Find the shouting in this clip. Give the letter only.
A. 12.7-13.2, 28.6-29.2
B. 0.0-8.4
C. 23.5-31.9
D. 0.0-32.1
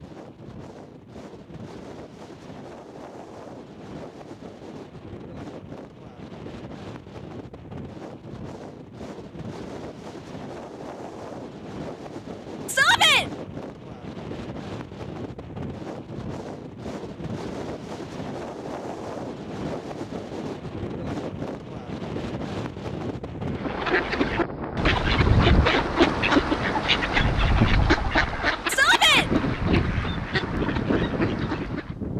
A.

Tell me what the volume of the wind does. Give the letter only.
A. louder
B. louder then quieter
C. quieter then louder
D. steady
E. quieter
A.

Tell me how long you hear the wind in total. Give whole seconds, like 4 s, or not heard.
32 s.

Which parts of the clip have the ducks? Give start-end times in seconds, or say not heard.
23.5-31.9.